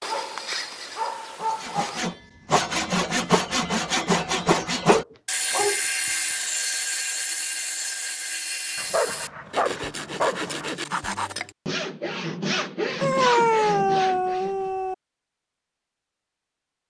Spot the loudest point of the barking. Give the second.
13 s.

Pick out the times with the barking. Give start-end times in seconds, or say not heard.
0.0-2.0, 4.8-5.8, 8.8-10.7, 13.0-14.9.